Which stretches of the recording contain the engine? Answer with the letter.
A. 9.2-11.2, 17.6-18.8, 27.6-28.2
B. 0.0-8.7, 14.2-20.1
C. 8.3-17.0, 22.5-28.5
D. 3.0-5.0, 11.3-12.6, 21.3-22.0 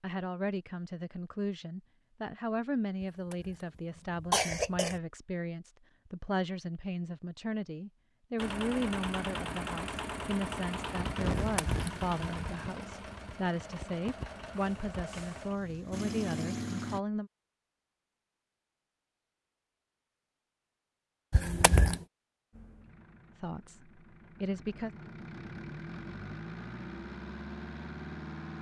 C.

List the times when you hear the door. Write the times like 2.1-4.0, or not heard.
not heard.